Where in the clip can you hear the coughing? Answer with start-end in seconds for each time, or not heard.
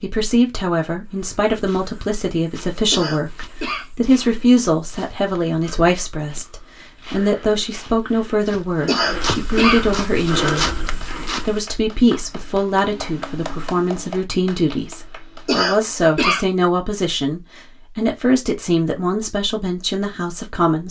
2.9-3.9, 8.8-9.8, 15.4-16.4.